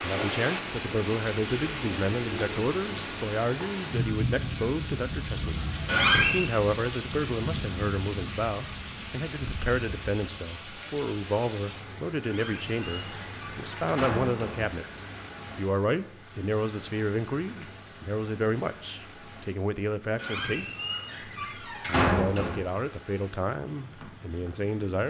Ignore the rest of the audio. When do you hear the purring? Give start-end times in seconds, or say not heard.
not heard.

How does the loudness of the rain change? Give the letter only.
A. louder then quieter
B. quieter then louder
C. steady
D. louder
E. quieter
E.